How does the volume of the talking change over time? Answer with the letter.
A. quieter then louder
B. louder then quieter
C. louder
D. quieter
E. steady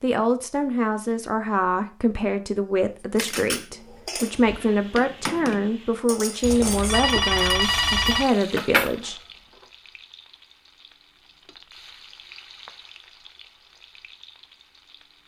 E.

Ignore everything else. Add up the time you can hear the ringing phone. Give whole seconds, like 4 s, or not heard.
2 s.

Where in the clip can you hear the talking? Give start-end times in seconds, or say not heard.
0.0-9.2.